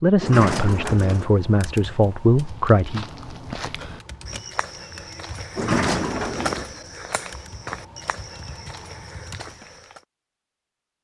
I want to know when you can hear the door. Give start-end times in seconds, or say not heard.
0.2-1.2, 5.5-6.7.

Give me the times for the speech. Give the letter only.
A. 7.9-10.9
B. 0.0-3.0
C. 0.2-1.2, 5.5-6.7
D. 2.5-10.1
B.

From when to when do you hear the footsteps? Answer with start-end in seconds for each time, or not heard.
2.5-10.1.